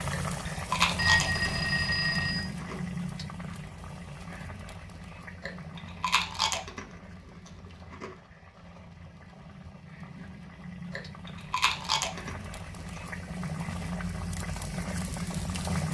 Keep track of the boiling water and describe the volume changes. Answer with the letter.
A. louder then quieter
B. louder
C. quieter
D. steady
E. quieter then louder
E.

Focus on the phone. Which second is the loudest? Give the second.
1 s.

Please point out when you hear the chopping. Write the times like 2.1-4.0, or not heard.
not heard.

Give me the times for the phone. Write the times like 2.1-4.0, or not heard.
0.9-2.5.